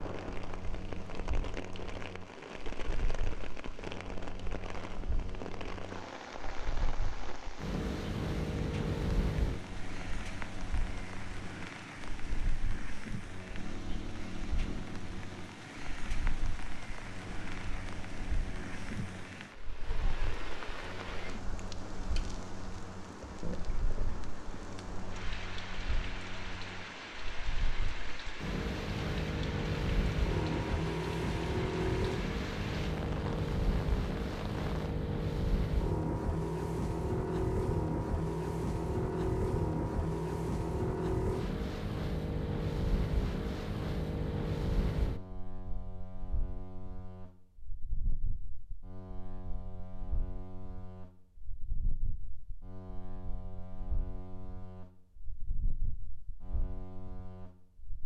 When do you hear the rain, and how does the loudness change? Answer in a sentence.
You can hear the rain from 0.0 to 35.0 s, at a steady volume.